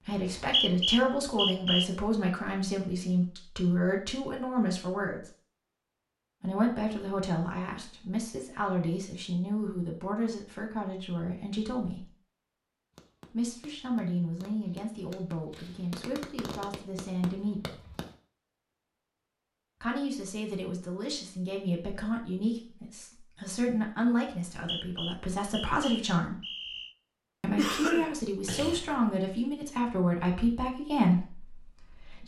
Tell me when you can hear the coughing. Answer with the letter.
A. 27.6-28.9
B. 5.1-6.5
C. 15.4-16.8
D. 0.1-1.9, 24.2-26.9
A.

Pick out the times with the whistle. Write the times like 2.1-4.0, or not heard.
0.1-1.9, 24.2-26.9.